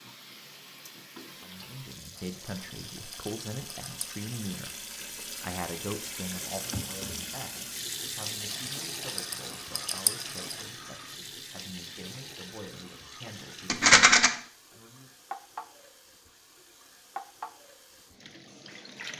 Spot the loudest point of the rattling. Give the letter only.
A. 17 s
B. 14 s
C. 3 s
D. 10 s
B.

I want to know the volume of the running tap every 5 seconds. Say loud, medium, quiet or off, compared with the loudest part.
medium, loud, medium, medium.